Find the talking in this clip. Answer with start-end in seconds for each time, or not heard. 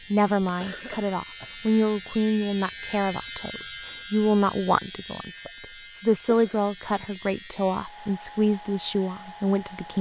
0.1-9.9.